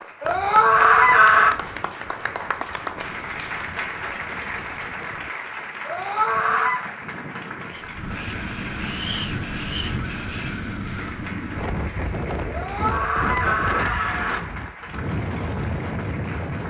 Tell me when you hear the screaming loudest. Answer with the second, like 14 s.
1 s.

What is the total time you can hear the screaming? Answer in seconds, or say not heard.
4 s.